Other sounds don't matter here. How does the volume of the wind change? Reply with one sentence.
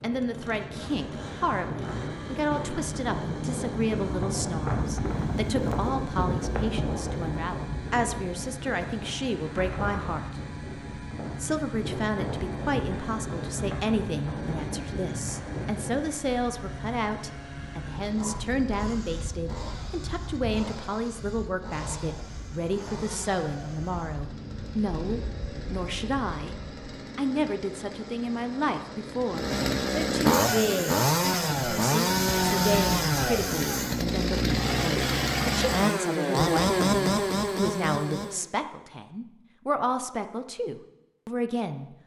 The volume of the wind goes down.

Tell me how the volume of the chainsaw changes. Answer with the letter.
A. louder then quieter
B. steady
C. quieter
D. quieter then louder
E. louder
E.